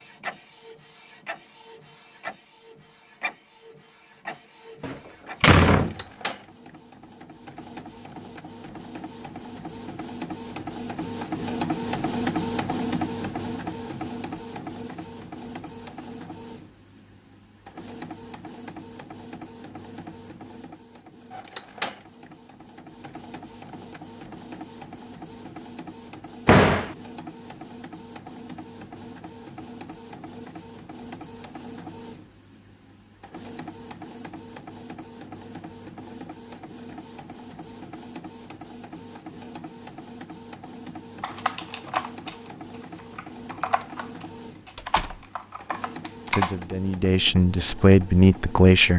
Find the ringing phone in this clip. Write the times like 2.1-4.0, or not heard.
not heard.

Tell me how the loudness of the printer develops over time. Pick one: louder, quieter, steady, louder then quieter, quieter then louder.
louder then quieter.